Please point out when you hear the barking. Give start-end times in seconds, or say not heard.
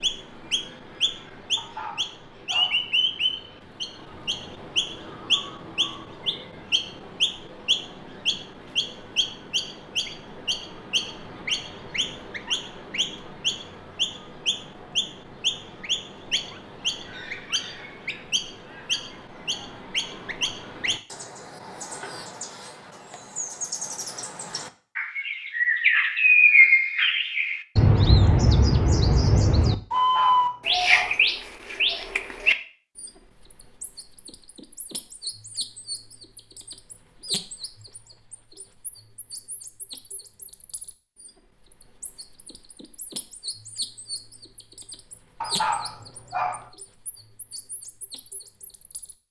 1.6-2.9, 29.9-31.2, 45.4-46.7.